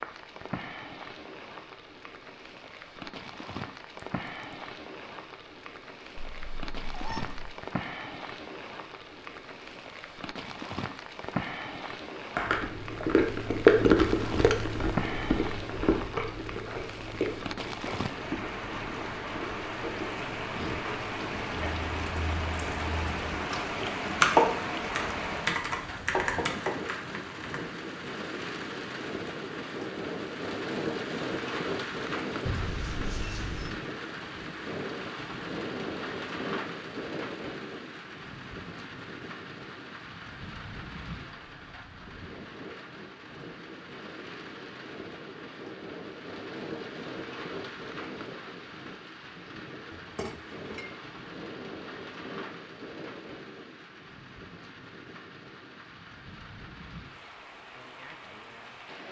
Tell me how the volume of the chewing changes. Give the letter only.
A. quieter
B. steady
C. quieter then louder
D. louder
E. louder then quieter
A.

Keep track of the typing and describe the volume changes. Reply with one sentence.
The volume of the typing goes up, then down.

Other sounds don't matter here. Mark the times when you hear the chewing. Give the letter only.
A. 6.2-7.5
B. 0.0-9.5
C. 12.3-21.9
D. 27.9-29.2
C.